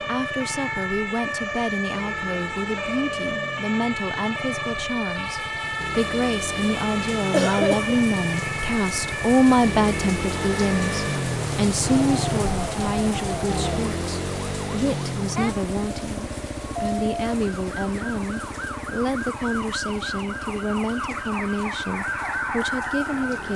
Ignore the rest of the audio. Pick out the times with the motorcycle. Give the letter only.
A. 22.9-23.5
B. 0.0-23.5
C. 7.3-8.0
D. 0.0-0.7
B.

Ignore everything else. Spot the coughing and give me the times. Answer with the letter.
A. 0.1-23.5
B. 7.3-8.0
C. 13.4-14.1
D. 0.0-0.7
B.